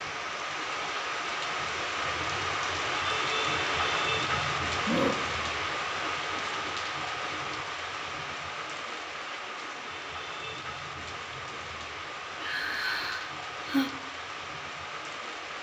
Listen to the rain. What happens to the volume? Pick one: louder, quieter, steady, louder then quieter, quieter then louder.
quieter.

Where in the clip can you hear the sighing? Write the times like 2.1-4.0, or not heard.
4.3-5.2, 12.4-13.9.